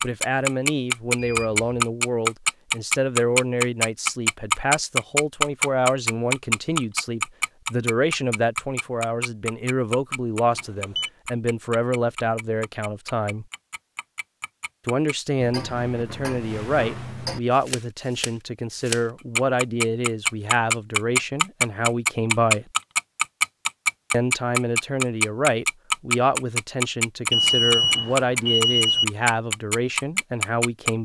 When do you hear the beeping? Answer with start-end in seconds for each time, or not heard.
1.1-1.7, 10.5-11.1, 27.3-29.1.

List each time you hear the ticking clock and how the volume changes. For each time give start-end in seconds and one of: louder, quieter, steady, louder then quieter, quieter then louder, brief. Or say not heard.
0.0-31.0 quieter then louder.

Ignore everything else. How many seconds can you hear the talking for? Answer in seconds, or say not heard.
28 s.